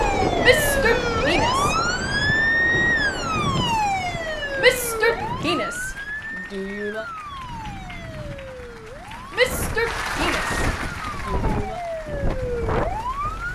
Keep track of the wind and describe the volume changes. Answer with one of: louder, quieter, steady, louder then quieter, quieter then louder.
quieter then louder.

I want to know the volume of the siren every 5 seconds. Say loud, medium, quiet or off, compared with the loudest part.
loud, medium, medium.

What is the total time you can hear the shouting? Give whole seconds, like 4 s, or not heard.
6 s.